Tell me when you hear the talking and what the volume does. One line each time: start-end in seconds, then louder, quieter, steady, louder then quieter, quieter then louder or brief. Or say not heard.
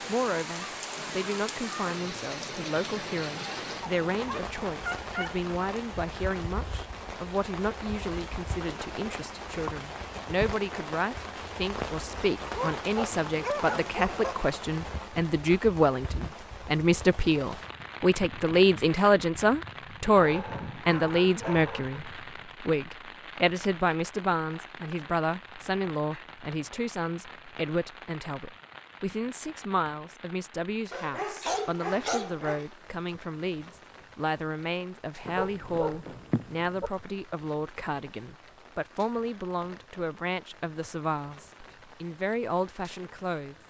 0.1-43.6 louder then quieter.